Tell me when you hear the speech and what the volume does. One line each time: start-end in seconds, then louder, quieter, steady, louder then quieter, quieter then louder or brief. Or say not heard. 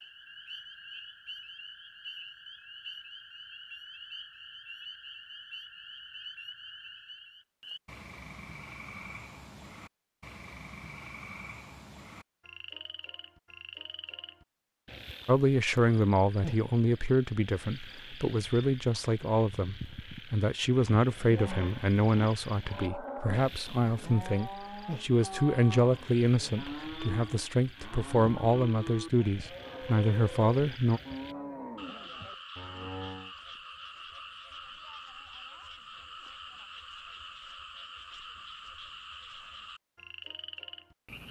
15.2-31.0 steady.